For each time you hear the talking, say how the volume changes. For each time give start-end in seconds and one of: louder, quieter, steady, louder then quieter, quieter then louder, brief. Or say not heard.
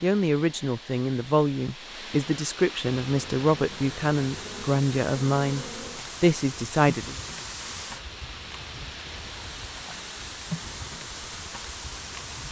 0.0-7.2 steady.